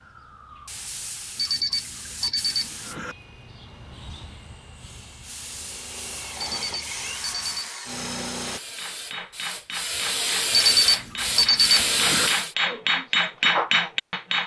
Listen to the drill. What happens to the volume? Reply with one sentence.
The loudness of the drill goes up.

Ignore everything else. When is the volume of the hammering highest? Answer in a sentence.
The loudest moment of the hammering is at 14 seconds.